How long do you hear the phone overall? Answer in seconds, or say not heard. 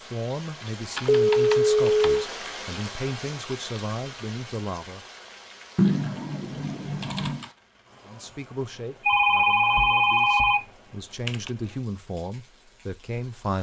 3 s.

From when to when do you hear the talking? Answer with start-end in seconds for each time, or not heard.
0.0-5.0, 8.1-13.5.